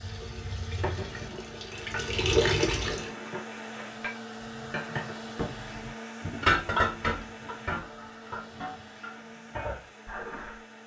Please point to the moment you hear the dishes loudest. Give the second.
7 s.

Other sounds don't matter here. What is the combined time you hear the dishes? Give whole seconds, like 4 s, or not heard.
10 s.